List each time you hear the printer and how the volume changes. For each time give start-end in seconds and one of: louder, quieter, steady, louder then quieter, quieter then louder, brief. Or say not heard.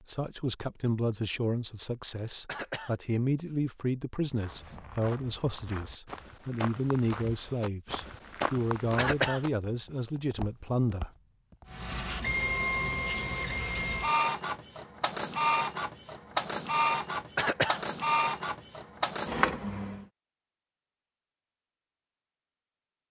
11.7-20.1 steady.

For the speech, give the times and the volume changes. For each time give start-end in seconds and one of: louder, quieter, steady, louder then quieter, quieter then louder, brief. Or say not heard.
0.1-11.1 steady.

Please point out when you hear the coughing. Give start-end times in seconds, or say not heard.
2.5-3.0, 8.9-9.4, 17.4-17.8.